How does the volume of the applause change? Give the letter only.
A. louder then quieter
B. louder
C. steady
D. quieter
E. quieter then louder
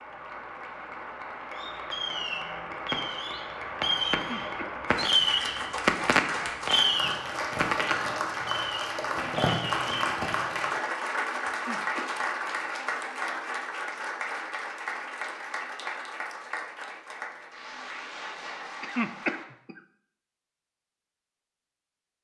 A.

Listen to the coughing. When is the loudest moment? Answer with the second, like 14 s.
19 s.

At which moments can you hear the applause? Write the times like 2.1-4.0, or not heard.
0.0-19.4.